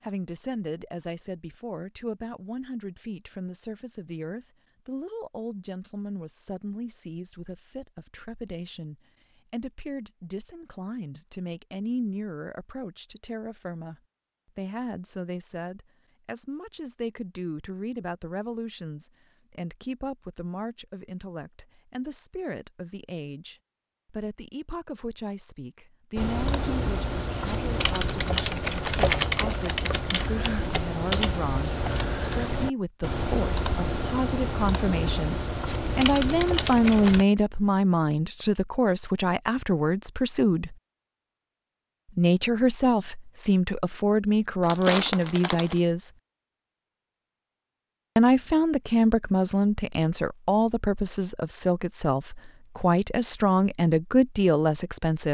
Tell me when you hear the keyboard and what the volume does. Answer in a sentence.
The keyboard can be heard from 26.1 to 37.2 s, at a steady volume.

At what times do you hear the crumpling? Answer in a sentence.
You can hear the crumpling from 44.6 to 45.8 s.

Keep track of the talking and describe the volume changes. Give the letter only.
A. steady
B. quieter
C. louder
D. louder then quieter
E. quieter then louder
C.